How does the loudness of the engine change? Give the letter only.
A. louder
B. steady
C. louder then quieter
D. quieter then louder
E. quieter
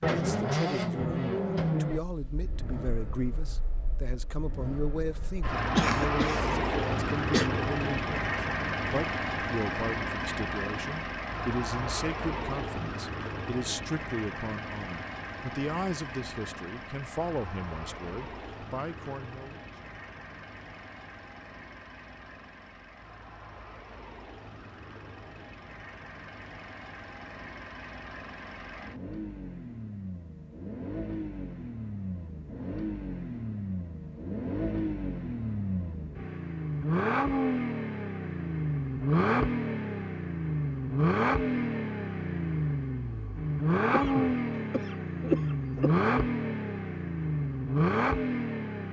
D.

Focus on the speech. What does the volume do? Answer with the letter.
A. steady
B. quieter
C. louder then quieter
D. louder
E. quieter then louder
A.